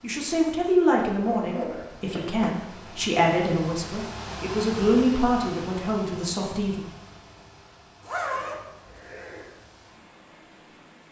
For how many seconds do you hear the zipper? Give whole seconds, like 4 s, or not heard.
3 s.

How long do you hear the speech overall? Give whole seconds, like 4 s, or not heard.
7 s.